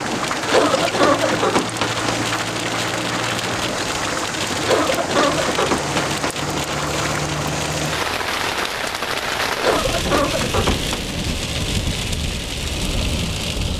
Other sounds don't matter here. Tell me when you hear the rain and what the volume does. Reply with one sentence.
You can hear the rain from 0.0 to 13.7 s, at a steady volume.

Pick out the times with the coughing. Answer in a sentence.
The coughing can be heard from 0.5 to 2.1 s, from 4.6 to 6.2 s and from 9.6 to 11.0 s.